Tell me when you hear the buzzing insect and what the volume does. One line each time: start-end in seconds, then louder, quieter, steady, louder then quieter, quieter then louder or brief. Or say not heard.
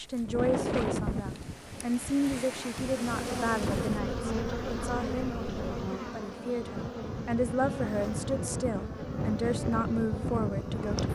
2.8-11.1 quieter.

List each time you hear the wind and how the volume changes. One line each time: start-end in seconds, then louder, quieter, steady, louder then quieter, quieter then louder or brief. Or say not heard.
0.0-11.1 quieter then louder.